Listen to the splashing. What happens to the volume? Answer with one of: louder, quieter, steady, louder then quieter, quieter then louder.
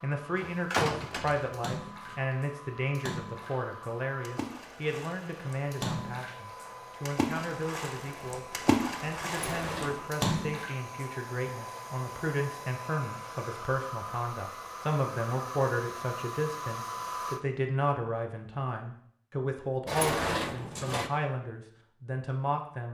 louder.